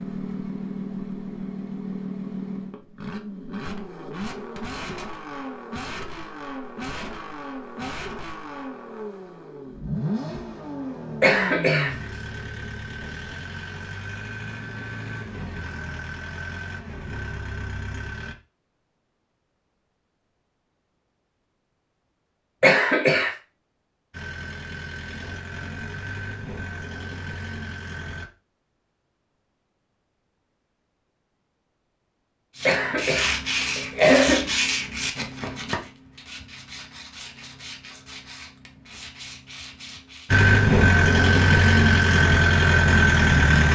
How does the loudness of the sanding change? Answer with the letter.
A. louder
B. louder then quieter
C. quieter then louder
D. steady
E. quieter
E.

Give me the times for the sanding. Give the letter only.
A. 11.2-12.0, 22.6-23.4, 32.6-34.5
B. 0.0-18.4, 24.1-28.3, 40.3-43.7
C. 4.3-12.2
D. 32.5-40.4
D.